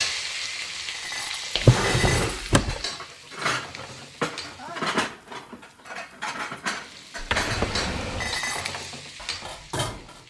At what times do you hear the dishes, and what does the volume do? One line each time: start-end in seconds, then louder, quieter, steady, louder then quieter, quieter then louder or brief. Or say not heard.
0.8-10.2 steady.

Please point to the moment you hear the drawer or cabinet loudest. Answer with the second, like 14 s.
2 s.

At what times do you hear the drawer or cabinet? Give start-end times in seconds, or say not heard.
1.6-2.8, 7.2-8.3.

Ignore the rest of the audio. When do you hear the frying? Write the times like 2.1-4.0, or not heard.
0.0-4.9, 6.7-10.2.